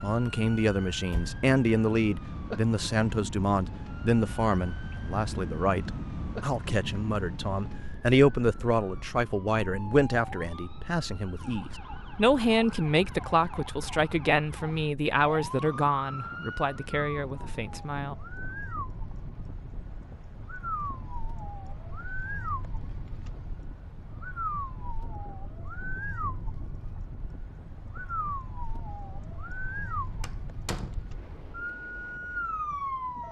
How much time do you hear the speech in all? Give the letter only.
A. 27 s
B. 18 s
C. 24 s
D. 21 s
B.